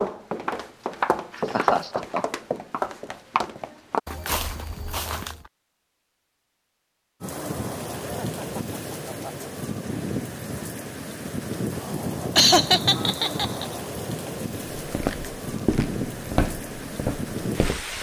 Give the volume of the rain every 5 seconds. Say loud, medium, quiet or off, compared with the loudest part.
off, loud, loud, loud.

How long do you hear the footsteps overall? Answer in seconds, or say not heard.
9 s.